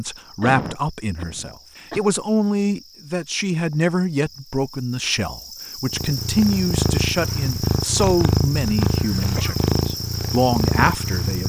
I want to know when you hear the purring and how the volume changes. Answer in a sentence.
You can hear the purring from 5.9 to 11.4 s, at a steady volume.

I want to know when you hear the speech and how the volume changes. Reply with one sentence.
The speech can be heard from 0.0 to 11.4 s, at a steady volume.